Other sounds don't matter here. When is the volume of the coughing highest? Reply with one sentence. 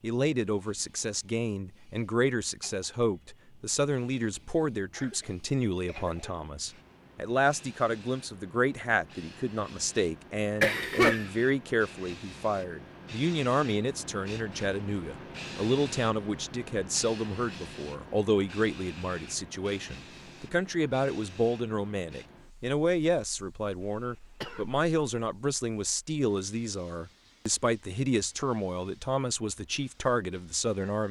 The volume of the coughing peaks at 11 seconds.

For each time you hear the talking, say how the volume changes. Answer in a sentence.
You can hear the talking from 0.0 to 31.0 s, at a steady volume.